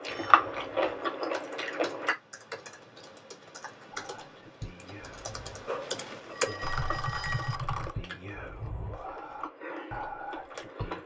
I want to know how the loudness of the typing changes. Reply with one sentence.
The loudness of the typing goes up.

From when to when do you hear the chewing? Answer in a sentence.
You can hear the chewing from 0.0 to 2.1 s and from 5.7 to 11.0 s.